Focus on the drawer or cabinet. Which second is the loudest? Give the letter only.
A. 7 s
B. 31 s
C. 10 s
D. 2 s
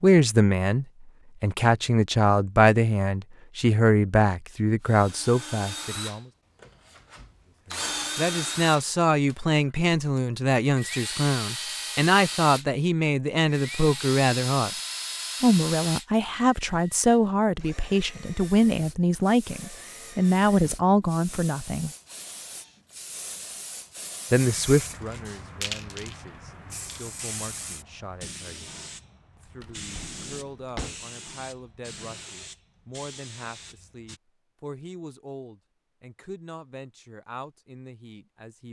B.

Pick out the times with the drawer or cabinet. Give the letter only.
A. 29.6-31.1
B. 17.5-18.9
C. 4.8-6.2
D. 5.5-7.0
A.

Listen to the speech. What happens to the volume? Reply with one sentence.
The volume of the speech goes down.